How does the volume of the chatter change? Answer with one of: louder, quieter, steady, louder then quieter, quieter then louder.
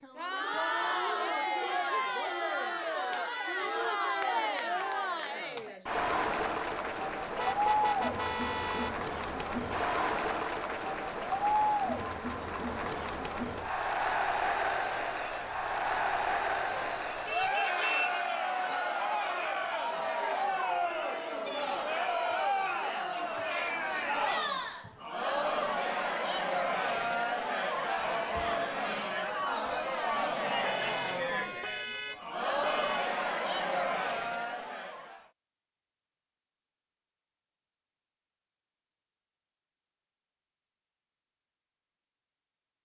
steady.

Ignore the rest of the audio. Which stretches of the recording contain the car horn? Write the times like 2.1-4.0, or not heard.
7.3-8.9, 16.7-18.1, 30.6-33.1.